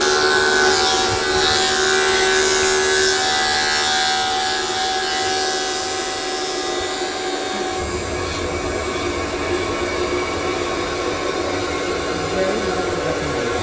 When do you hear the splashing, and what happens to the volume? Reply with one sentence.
The splashing can't be heard in this clip.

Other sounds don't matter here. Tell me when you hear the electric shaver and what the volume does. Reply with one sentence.
The electric shaver can be heard from 0.0 to 13.5 s, getting quieter.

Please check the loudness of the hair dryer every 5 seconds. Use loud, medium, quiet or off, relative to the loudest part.
medium, loud, loud.